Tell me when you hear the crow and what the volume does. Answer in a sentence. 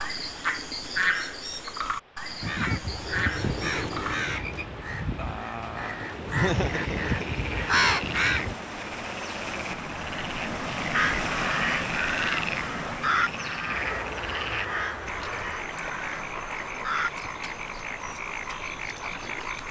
The crow can be heard from 2.4 to 8.6 s, getting quieter then louder; and from 10.9 to 17.2 s, getting quieter.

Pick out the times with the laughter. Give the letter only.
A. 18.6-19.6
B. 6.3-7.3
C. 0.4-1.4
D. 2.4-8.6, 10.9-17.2
B.